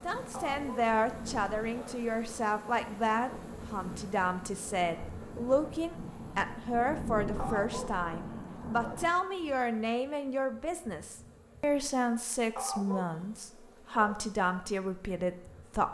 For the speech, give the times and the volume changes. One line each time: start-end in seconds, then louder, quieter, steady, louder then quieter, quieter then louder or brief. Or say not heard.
0.0-15.8 steady.